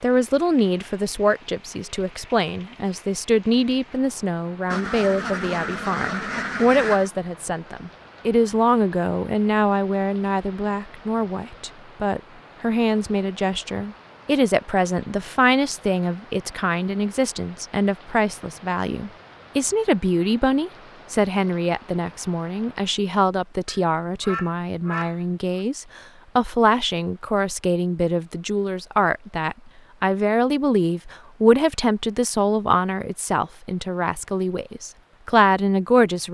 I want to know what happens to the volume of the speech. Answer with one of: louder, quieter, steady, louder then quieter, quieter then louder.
steady.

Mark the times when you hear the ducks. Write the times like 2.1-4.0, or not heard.
4.7-7.1, 23.6-25.6.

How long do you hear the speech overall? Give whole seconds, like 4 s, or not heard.
36 s.